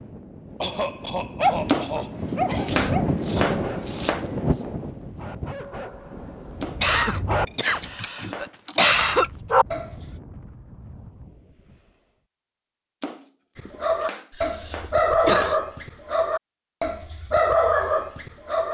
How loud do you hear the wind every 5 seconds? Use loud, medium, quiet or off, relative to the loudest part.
loud, quiet, quiet, off.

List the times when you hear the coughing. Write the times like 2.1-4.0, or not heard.
0.6-2.8, 6.8-9.3, 14.3-15.6.